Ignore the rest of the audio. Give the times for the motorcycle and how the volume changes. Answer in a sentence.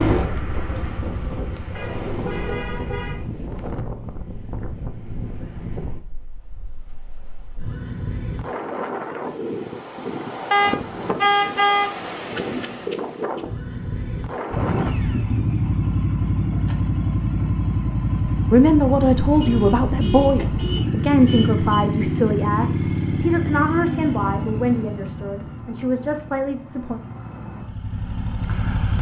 The motorcycle can be heard briefly from 0.0 to 2.6 s; and from 14.5 to 28.9 s, getting quieter.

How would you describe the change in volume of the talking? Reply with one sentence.
The volume of the talking goes down.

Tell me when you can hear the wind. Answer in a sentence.
The wind can be heard from 0.1 to 14.9 s.